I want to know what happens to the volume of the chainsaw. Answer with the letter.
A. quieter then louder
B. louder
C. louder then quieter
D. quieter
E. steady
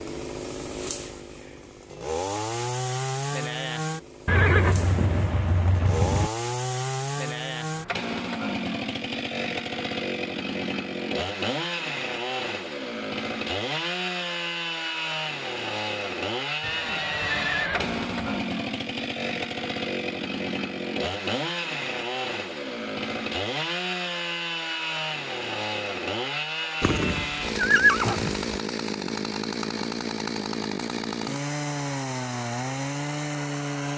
E.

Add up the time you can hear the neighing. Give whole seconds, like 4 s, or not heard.
6 s.